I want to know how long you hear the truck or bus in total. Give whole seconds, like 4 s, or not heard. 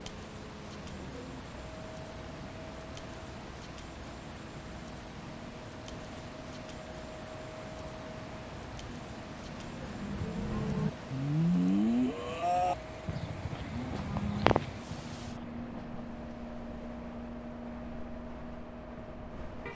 20 s.